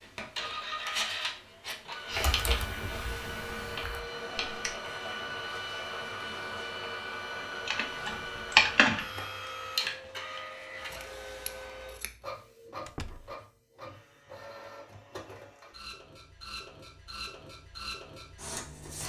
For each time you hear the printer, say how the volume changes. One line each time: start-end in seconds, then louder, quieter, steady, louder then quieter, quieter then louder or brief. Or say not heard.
0.0-19.0 quieter.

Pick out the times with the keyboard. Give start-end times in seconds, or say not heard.
2.1-4.8, 7.5-9.1.